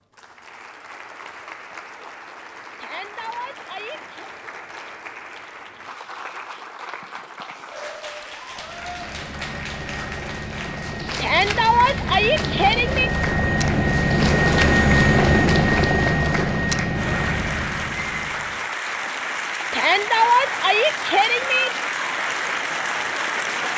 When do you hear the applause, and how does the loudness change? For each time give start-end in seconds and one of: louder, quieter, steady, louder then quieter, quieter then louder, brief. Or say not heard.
0.0-23.7 louder.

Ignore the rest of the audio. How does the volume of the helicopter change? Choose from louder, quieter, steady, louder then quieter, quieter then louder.
louder then quieter.